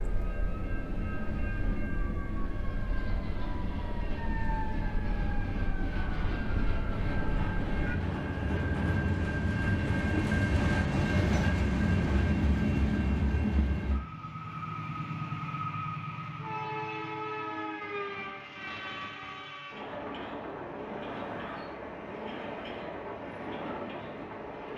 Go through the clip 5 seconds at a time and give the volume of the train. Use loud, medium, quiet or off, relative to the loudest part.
medium, loud, loud, medium, medium.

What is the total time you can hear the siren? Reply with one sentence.
The siren can be heard for 8 seconds in total.